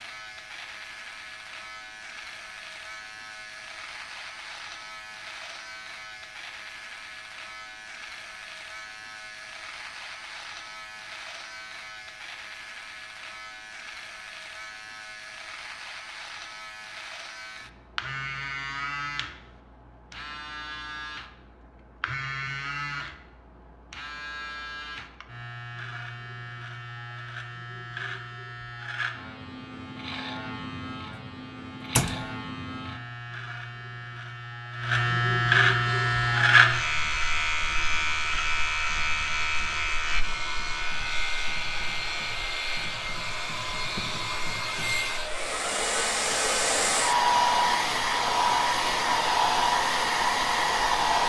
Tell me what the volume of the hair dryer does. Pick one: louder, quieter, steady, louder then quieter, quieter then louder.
louder.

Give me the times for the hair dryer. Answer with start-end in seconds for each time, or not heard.
35.8-51.2.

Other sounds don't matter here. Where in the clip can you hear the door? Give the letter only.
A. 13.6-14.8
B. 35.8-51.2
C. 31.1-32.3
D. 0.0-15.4
C.